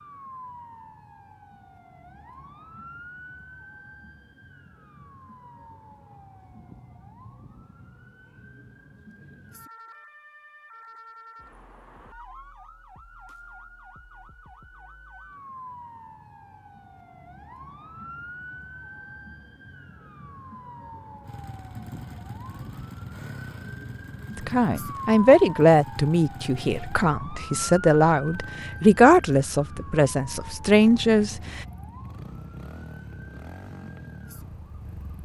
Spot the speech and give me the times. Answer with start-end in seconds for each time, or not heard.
24.4-31.6.